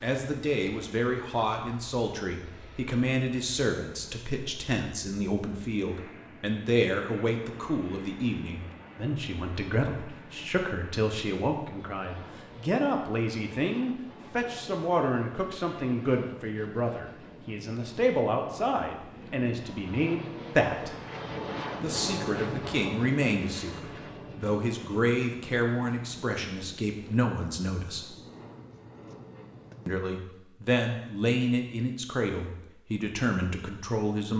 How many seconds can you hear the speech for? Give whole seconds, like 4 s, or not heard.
32 s.